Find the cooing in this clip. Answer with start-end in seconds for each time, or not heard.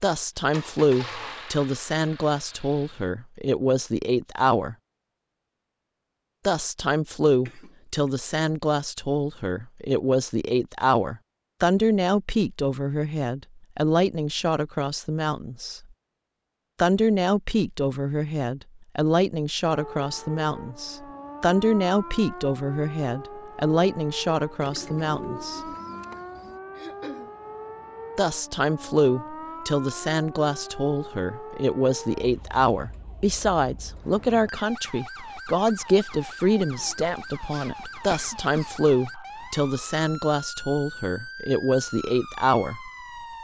24.6-26.6.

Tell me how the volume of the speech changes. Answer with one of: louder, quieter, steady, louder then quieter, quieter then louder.
steady.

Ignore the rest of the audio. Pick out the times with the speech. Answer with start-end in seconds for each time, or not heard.
0.0-4.8, 6.5-15.8, 16.8-25.7, 28.1-42.8.